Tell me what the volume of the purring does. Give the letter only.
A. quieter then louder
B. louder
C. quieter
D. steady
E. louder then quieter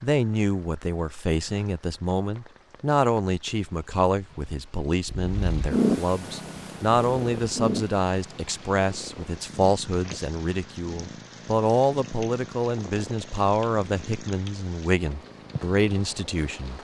C.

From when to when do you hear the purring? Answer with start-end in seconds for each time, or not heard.
5.0-16.8.